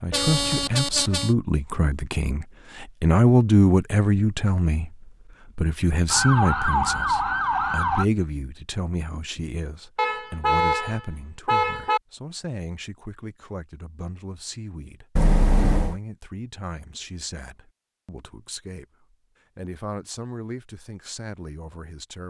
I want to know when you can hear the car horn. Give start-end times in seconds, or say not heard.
0.1-1.3, 9.9-12.0, 15.2-15.9.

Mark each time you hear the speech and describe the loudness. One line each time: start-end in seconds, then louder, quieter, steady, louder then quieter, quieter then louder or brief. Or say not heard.
0.0-22.2 quieter.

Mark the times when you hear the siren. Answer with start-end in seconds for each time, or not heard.
6.1-8.1.